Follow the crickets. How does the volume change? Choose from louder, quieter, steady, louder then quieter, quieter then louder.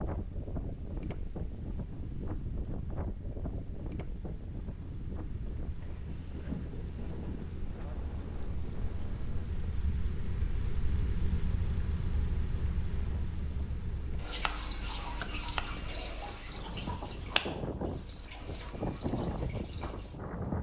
louder then quieter.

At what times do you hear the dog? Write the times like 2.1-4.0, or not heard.
not heard.